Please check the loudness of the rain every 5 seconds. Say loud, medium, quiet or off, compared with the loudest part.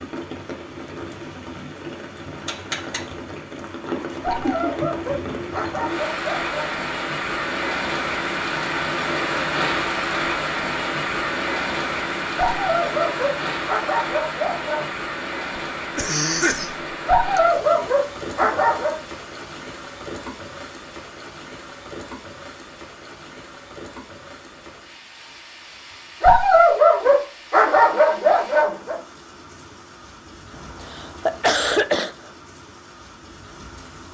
medium, loud, loud, medium, quiet, quiet, quiet.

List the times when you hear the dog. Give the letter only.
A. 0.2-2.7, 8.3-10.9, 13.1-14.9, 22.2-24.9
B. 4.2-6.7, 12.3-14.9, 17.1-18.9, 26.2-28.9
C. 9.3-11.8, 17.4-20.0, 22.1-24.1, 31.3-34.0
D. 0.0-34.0
B.